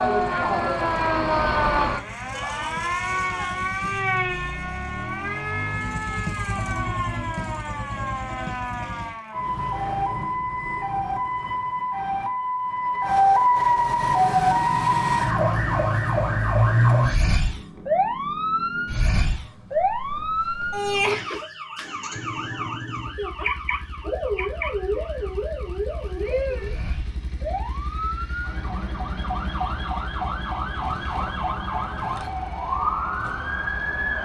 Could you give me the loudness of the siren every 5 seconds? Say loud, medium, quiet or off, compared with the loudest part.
loud, medium, loud, loud, medium, medium, medium.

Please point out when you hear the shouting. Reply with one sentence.
You can hear the shouting from 2.3 to 3.6 s.